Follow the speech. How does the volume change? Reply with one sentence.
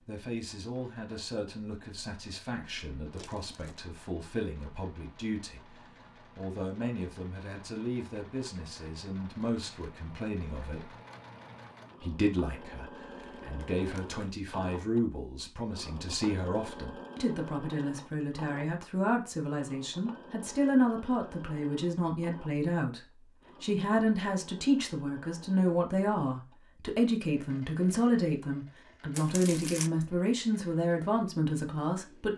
The loudness of the speech goes up.